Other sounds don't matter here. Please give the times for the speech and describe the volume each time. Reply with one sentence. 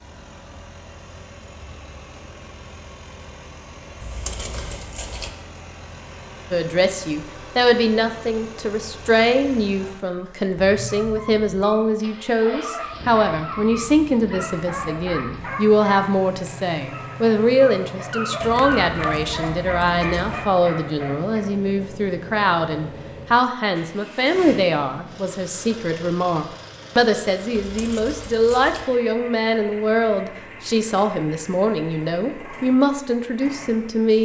The speech can be heard from 6.5 to 34.1 s, at a steady volume.